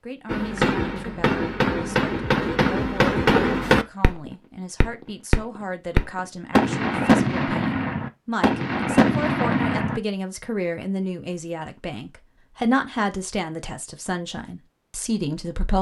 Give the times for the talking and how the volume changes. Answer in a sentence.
You can hear the talking from 0.0 to 15.7 s, getting louder.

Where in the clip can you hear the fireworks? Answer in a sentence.
You can hear the fireworks from 0.2 to 10.0 s.